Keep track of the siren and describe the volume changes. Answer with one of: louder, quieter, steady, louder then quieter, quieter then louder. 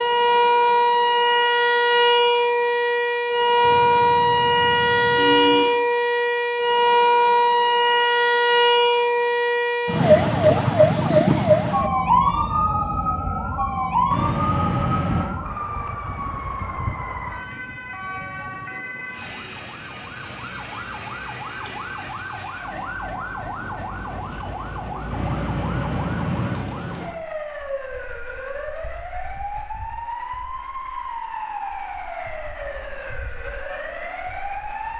quieter.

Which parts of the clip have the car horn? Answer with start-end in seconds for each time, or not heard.
3.6-5.7, 14.1-15.2, 25.1-26.7.